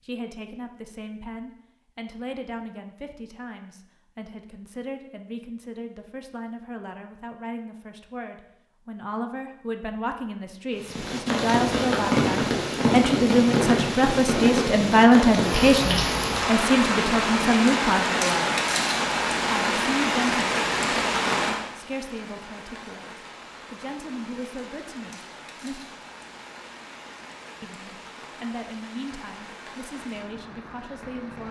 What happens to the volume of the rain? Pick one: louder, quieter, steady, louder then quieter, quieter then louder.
quieter.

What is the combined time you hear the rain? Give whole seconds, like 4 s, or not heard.
21 s.